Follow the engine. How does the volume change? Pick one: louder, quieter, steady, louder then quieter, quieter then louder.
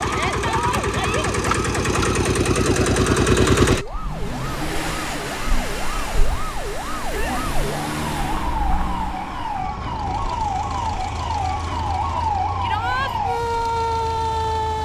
quieter.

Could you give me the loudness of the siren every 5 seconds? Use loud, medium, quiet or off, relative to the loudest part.
medium, medium, loud.